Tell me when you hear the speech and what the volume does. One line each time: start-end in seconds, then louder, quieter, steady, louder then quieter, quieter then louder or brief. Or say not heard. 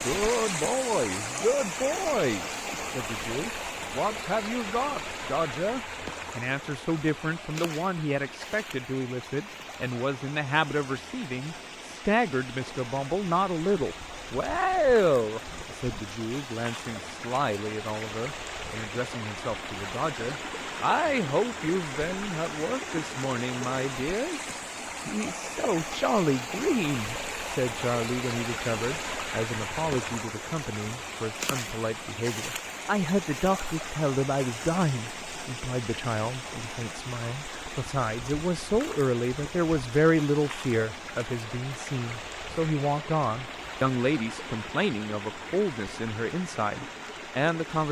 0.0-47.8 steady.